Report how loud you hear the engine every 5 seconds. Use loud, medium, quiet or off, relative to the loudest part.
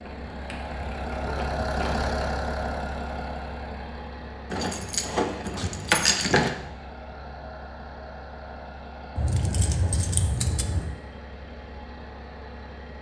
loud, medium, medium.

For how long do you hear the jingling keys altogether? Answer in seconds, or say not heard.
6 s.